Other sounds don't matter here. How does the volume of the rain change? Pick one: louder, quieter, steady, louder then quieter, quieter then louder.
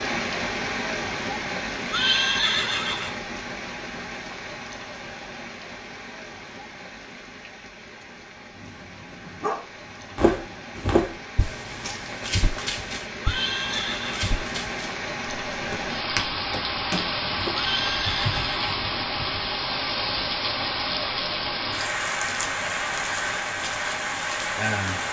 quieter then louder.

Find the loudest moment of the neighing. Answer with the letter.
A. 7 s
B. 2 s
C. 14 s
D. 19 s
B.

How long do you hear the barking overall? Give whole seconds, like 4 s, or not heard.
2 s.